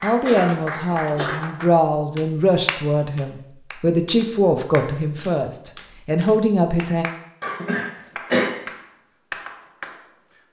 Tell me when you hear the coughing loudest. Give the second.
8 s.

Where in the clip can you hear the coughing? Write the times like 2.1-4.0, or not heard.
0.2-1.3, 7.4-8.5.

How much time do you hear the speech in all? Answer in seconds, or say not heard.
7 s.